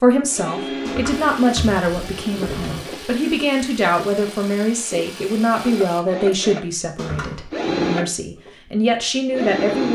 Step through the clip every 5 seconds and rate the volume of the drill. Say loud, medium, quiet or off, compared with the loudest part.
medium, loud.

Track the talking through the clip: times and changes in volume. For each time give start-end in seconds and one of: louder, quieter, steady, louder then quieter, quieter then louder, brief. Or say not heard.
0.0-9.9 steady.